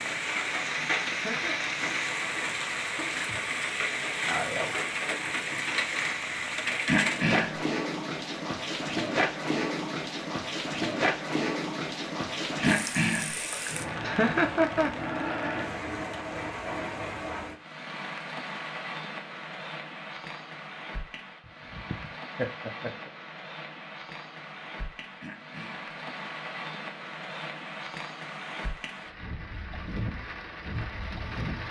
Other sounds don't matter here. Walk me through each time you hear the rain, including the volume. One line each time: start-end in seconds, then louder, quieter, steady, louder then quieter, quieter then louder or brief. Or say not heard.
0.0-31.6 quieter.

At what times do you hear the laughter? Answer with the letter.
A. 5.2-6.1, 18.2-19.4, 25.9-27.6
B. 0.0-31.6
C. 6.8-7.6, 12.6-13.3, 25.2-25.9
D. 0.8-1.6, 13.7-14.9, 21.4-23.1
D.